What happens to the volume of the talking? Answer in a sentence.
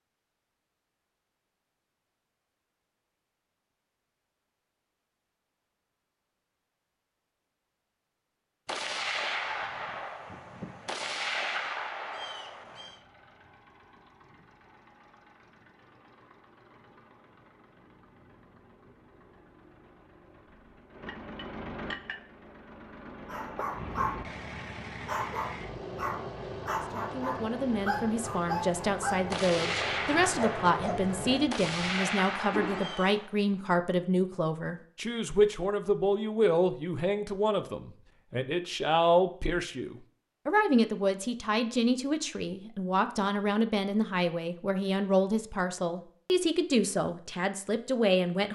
The loudness of the talking stays about the same.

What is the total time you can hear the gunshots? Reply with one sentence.
You can hear the gunshots for 8 seconds altogether.